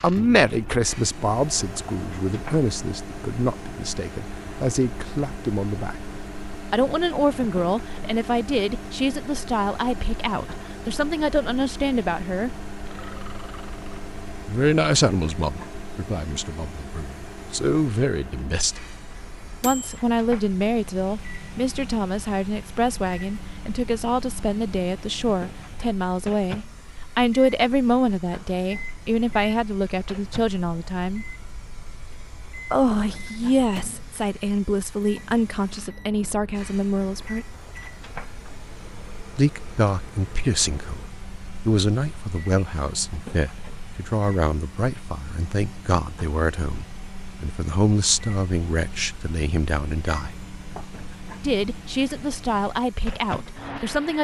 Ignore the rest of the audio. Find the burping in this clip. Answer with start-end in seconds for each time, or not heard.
12.8-14.1.